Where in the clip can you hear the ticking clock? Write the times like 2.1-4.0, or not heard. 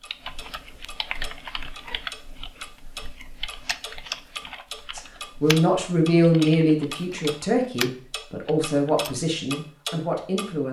0.0-10.6.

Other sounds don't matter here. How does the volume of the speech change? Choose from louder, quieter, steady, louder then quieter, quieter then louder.
quieter.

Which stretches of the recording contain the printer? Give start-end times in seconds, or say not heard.
not heard.